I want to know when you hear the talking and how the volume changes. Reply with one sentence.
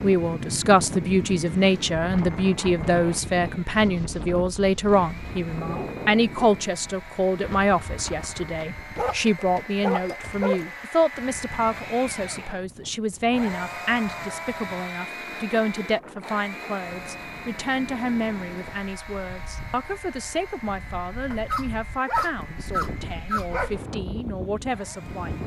The talking can be heard from 0.0 to 25.4 s, getting quieter.